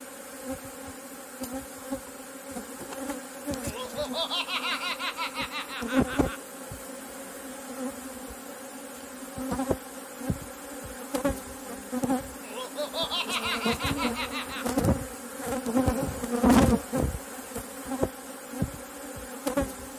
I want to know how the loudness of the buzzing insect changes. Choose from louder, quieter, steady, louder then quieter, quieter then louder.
louder.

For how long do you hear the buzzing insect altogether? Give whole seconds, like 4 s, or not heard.
20 s.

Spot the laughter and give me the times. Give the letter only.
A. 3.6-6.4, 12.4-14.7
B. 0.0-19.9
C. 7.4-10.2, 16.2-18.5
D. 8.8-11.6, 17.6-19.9
A.